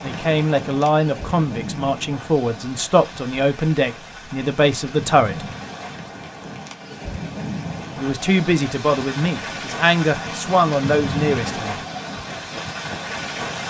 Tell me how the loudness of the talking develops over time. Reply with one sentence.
The volume of the talking stays about the same.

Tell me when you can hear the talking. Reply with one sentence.
You can hear the talking from 0.0 to 5.5 s and from 8.0 to 11.8 s.